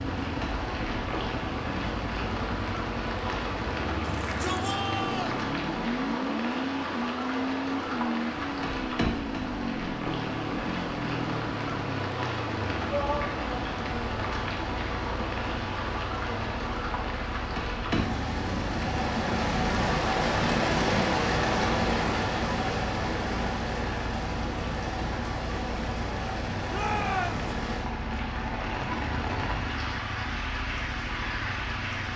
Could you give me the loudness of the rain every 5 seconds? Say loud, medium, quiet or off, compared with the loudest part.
medium, medium, medium, loud, loud, medium, medium.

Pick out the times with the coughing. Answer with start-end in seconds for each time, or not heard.
not heard.